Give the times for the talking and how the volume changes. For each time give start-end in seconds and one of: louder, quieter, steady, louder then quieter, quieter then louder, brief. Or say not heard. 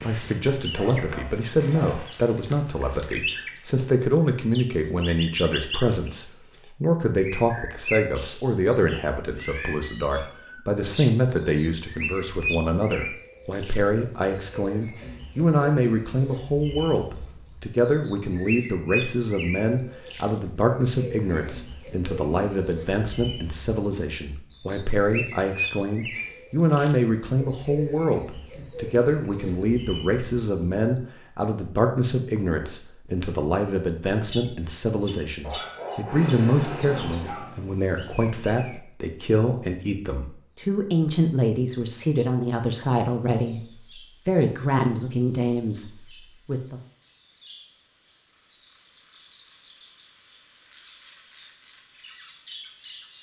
0.0-46.8 steady.